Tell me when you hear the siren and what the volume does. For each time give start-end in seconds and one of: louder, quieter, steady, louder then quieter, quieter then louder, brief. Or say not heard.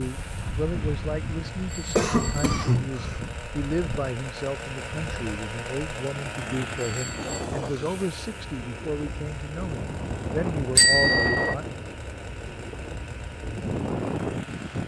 not heard.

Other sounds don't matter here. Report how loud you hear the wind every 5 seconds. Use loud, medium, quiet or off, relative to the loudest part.
medium, medium, loud.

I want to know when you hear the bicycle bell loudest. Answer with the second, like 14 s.
11 s.